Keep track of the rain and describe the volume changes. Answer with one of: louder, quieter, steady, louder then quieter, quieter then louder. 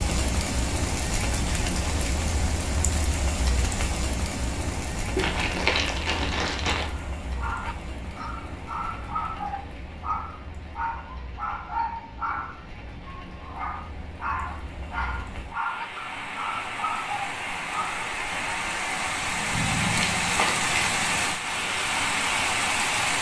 quieter then louder.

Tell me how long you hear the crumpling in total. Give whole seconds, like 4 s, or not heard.
3 s.